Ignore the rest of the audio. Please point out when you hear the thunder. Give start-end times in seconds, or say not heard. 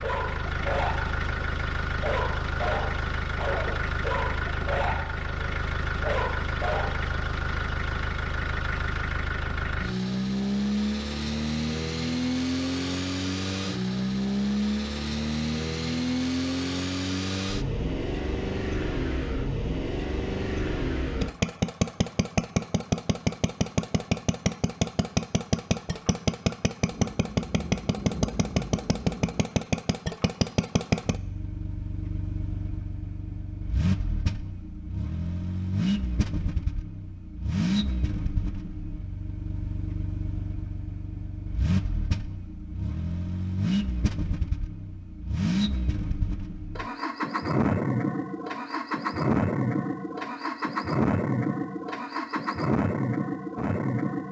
26.9-29.4.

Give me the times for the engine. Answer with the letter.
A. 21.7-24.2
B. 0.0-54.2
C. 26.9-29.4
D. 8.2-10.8
B.